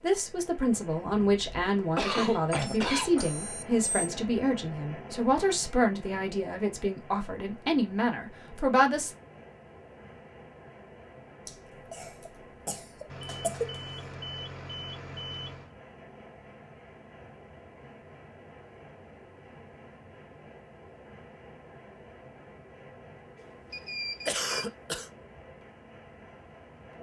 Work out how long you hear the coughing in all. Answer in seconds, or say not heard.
6 s.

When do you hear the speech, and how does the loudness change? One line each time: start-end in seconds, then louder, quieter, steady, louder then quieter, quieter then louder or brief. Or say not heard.
0.0-9.1 steady.